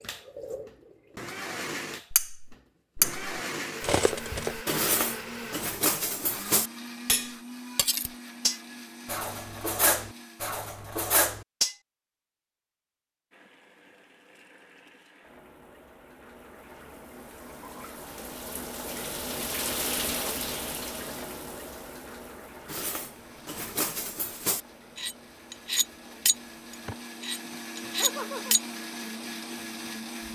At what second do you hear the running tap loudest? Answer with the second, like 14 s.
20 s.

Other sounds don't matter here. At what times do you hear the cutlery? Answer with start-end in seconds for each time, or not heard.
2.1-11.8, 22.6-28.6.